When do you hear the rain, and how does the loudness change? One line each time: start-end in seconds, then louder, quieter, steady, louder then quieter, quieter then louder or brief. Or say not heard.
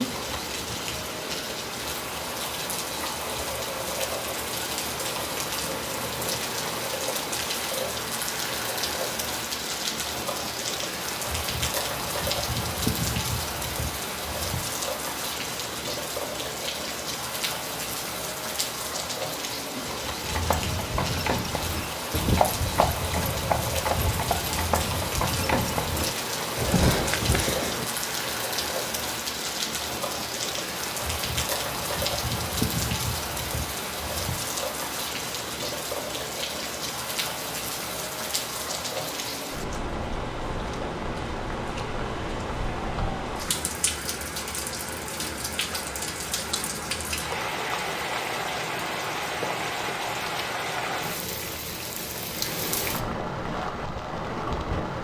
0.0-54.9 steady.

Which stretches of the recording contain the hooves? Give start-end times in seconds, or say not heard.
20.2-27.9.